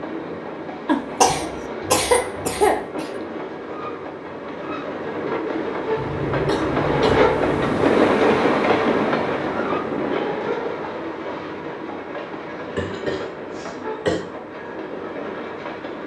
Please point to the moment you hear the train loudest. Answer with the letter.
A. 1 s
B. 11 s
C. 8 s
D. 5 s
C.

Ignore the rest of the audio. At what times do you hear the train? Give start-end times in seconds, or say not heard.
0.0-16.0.